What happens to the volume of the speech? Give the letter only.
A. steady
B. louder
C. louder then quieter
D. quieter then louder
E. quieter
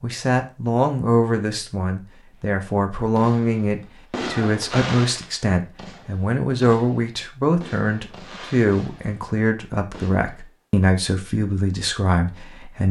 A.